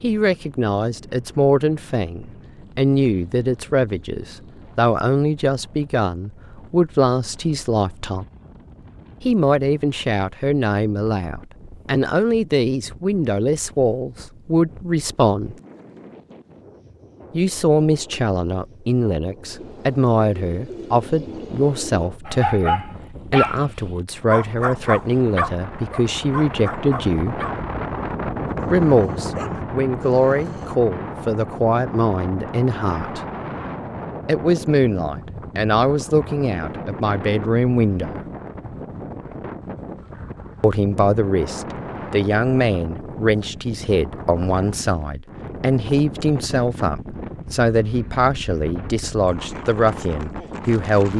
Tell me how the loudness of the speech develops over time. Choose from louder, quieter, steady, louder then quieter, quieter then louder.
steady.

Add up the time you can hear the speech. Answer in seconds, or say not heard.
44 s.